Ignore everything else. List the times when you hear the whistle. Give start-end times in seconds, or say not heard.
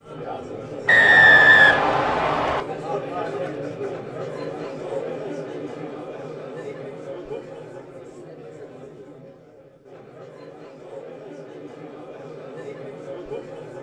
0.8-2.6.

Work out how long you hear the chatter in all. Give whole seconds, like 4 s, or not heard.
14 s.